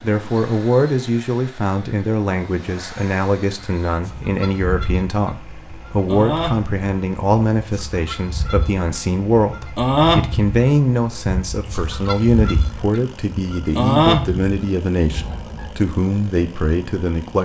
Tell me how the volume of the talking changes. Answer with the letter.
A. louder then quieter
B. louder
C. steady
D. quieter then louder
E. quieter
C.